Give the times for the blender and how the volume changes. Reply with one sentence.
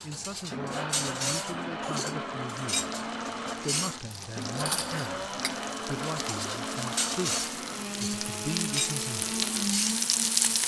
You can hear the blender from 0.0 to 10.6 s, at a steady volume.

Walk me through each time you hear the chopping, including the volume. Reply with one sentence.
The chopping can't be heard in this clip.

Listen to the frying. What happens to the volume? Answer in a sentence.
The volume of the frying goes up.